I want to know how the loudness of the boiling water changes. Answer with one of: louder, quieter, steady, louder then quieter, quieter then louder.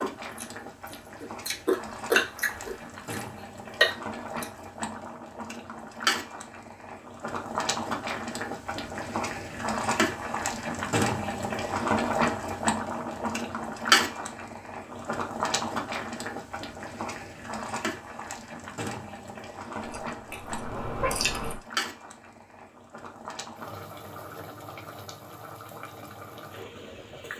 louder then quieter.